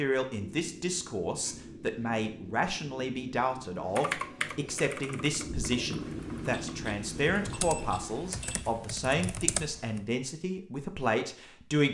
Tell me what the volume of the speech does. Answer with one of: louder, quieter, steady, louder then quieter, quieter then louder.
steady.